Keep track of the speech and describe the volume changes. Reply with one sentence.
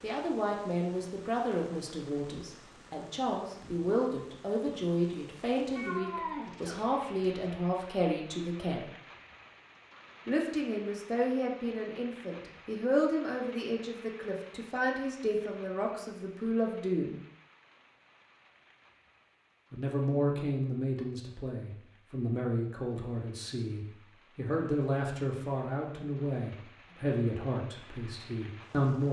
The volume of the speech stays about the same.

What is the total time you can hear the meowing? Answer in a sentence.
The meowing can be heard for 2 seconds in total.